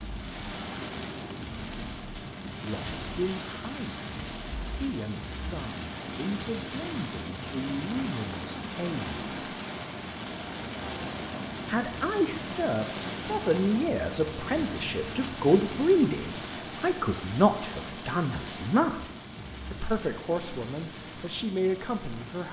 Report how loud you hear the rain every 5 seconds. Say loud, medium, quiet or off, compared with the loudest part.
loud, loud, loud, loud, medium.